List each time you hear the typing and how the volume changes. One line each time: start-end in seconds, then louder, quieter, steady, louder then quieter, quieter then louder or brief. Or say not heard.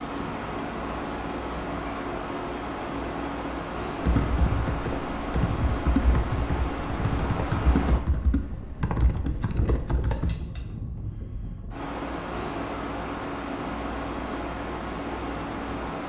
4.0-10.3 steady.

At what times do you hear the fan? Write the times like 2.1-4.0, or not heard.
0.0-16.0.